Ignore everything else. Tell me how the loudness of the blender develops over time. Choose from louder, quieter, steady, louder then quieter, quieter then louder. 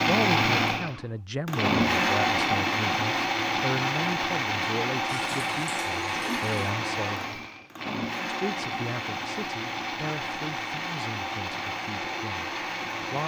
quieter.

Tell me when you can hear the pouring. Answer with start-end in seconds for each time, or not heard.
5.0-6.8.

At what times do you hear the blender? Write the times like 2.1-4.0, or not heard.
0.0-13.2.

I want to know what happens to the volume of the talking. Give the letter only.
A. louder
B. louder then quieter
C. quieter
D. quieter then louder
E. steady
C.